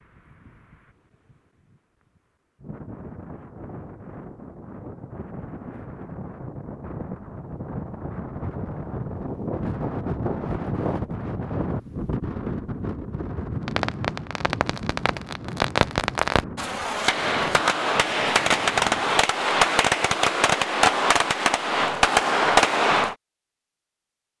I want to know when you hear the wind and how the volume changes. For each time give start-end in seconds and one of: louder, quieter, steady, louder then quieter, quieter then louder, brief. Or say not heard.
0.0-19.2 louder then quieter.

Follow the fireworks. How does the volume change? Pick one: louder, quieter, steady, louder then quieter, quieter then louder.
louder.